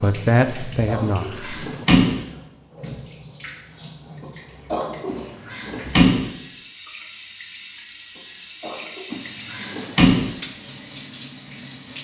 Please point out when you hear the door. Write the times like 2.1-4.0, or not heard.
1.0-2.2, 5.0-6.3, 9.1-10.3.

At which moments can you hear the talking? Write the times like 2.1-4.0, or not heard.
0.0-1.9.